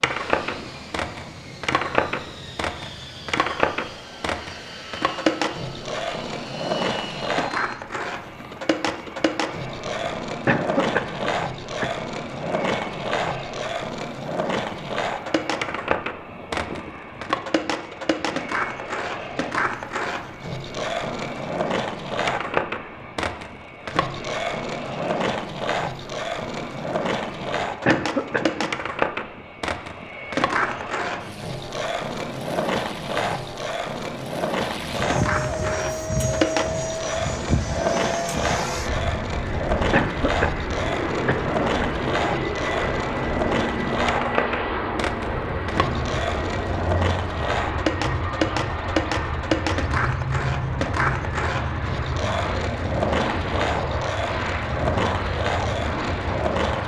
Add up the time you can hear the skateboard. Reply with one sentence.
You can hear the skateboard for 57 seconds altogether.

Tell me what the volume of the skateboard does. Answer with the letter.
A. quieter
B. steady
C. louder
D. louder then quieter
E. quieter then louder
B.